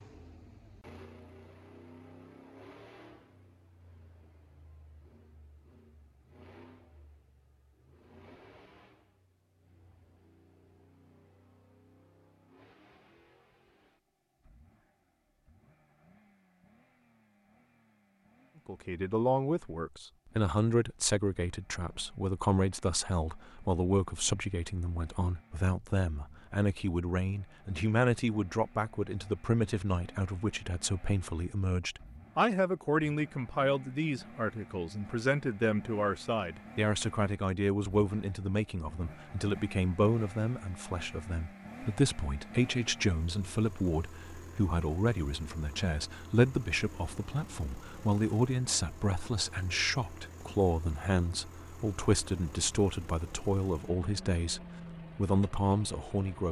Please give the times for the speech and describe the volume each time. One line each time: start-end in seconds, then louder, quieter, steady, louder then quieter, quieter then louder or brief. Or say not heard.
18.6-56.4 steady.